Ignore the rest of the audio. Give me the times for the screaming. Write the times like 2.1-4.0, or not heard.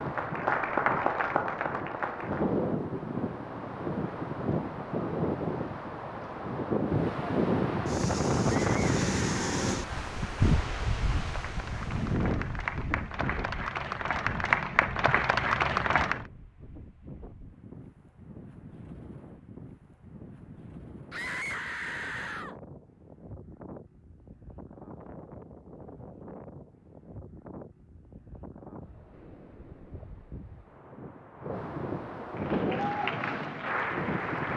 8.4-9.7, 21.1-22.6.